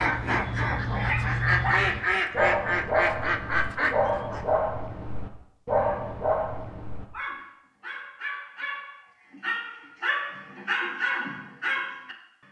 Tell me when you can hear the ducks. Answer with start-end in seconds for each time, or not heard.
0.0-4.6.